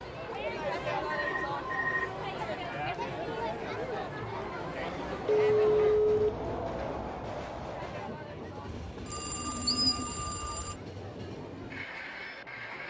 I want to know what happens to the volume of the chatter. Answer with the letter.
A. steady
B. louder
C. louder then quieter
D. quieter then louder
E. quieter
E.